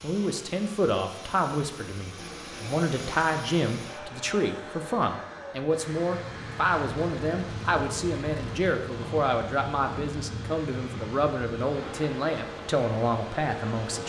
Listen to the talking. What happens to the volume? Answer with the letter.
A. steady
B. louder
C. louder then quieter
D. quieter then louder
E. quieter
A.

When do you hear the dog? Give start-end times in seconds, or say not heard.
not heard.